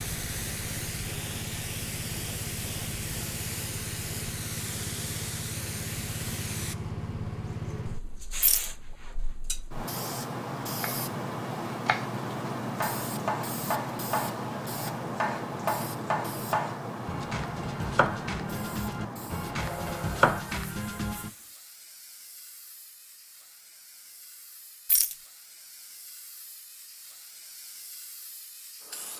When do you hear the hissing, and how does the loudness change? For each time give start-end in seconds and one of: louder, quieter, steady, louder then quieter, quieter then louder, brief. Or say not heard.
0.0-29.1 quieter.